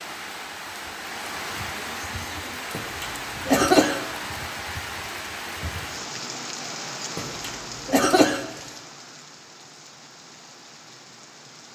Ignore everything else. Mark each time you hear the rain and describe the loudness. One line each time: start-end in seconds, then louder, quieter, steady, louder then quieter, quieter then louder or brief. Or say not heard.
0.0-11.7 quieter.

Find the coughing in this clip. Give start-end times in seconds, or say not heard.
2.7-4.0, 7.2-8.4.